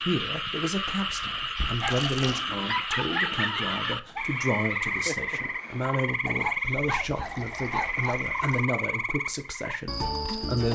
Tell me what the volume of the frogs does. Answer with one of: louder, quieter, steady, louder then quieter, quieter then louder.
steady.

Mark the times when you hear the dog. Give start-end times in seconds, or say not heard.
1.2-8.2.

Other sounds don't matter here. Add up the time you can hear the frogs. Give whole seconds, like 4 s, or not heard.
11 s.